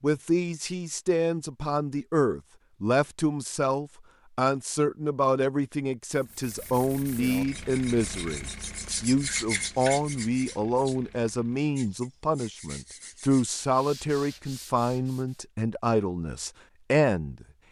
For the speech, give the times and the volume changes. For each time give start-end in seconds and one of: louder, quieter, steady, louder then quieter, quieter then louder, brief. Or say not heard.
0.0-17.4 steady.